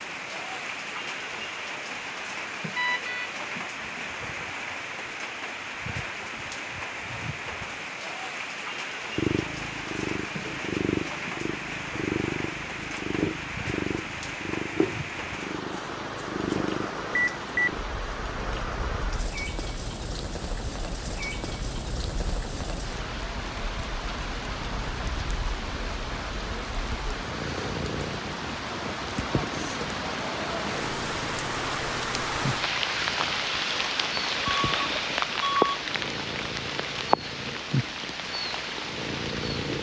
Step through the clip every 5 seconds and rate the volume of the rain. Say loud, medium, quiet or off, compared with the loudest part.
medium, medium, medium, medium, medium, medium, loud, loud.